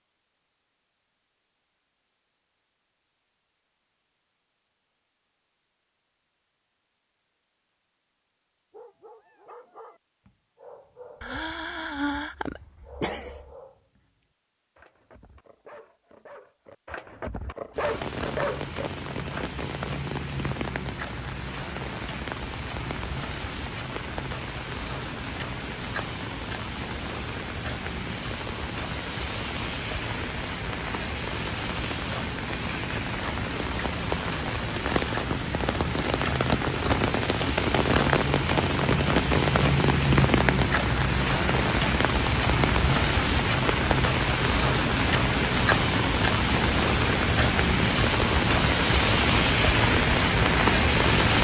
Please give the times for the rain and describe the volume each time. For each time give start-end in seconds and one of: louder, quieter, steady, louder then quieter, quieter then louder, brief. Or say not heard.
17.7-51.3 louder.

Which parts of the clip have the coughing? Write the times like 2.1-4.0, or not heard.
11.2-13.6.